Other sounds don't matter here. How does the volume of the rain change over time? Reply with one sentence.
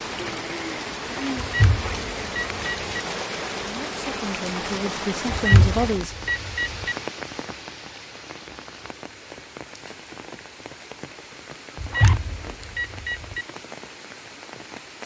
The volume of the rain goes down.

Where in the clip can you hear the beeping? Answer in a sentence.
The beeping can be heard from 1.4 to 3.0 s, from 5.3 to 7.0 s and from 11.8 to 13.4 s.